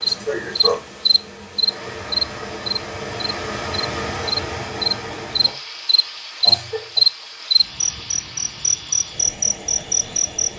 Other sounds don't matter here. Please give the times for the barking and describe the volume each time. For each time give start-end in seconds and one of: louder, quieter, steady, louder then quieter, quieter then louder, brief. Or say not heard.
not heard.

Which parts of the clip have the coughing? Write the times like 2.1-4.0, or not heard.
0.1-0.8, 6.4-7.0.